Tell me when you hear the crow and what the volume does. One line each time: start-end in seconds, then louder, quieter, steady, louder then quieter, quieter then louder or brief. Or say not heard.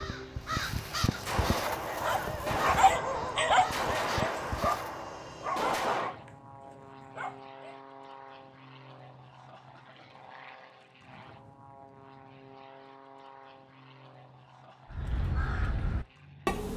0.0-5.0 quieter then louder
14.9-16.7 brief.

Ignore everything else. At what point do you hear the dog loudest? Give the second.
3 s.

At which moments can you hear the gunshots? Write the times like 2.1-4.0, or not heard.
1.2-6.2.